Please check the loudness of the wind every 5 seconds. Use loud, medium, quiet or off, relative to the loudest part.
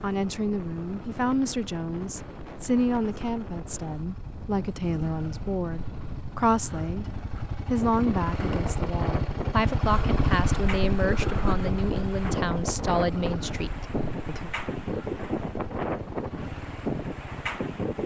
medium, medium, loud, loud.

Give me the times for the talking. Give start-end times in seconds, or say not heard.
0.0-7.0, 7.7-14.5.